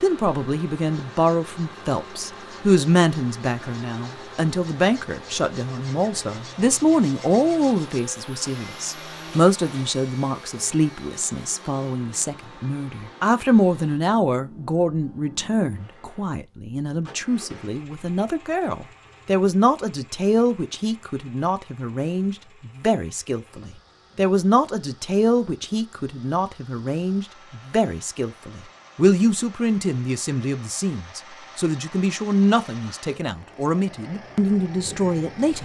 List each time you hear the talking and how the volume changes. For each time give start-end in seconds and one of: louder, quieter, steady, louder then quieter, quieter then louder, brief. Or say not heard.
0.0-35.6 steady.